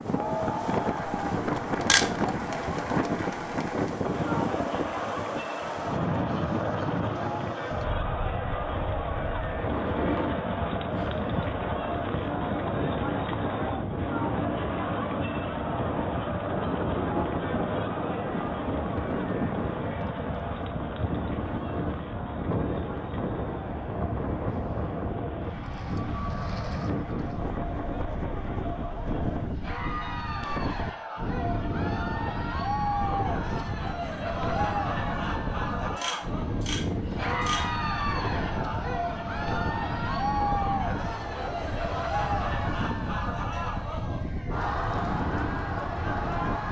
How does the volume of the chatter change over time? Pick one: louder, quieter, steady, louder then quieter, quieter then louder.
quieter then louder.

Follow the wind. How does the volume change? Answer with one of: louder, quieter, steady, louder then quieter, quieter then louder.
steady.